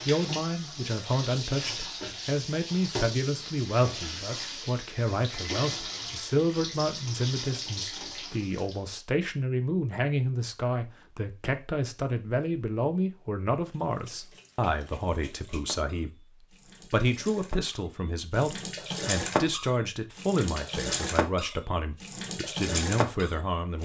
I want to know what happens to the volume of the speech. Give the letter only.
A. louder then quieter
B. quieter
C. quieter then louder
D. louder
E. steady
E.